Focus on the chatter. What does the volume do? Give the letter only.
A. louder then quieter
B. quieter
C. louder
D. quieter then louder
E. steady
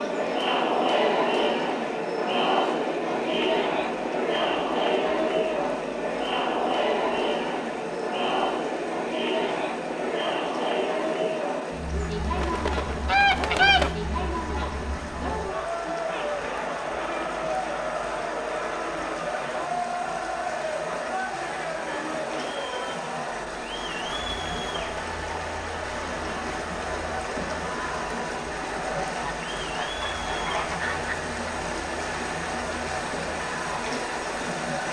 B.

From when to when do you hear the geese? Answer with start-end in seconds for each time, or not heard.
12.4-13.9, 29.2-31.1.